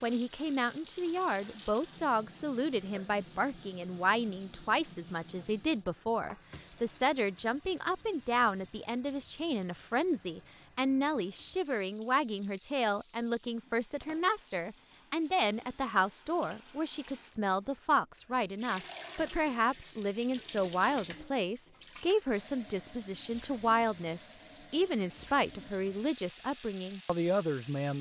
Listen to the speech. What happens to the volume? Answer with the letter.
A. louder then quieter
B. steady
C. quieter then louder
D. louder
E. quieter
B.